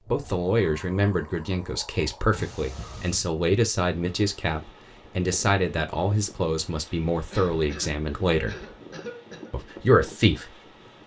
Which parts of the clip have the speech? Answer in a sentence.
The speech can be heard from 0.1 to 8.6 s and from 9.5 to 11.0 s.